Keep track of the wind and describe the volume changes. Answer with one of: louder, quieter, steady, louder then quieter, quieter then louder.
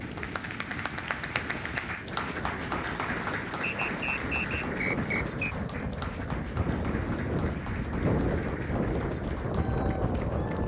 louder.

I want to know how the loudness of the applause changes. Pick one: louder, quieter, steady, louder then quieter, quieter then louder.
quieter.